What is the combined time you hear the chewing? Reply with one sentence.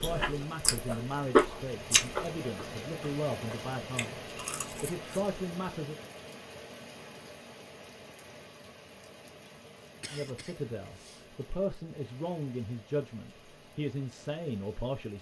You can hear the chewing for 5 seconds altogether.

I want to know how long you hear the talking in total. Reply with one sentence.
You can hear the talking for 11 seconds altogether.